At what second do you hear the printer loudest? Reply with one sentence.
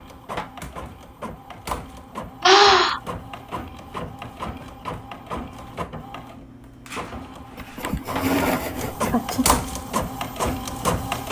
The volume of the printer peaks at 11 seconds.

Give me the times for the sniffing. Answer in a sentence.
You can hear the sniffing from 2.5 to 3.0 s and from 7.5 to 9.7 s.